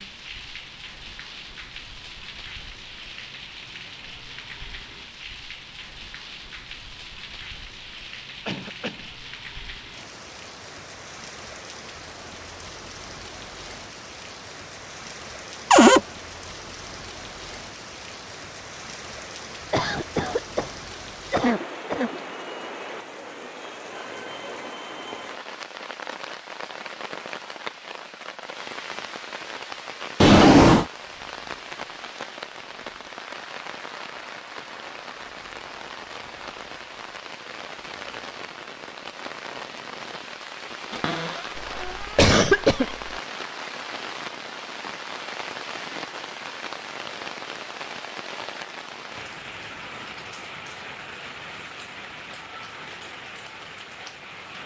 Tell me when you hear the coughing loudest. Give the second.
42 s.